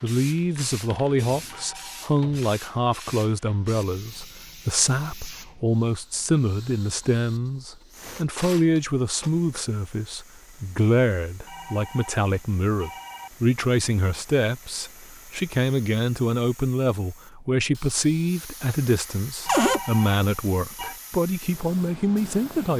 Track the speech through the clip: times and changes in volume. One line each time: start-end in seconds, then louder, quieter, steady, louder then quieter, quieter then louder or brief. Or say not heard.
0.0-22.7 steady.